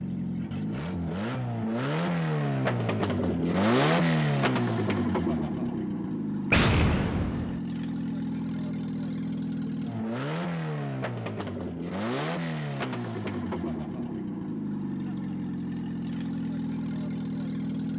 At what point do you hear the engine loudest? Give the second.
4 s.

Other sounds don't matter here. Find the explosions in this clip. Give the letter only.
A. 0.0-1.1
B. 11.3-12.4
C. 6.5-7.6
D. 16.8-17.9
C.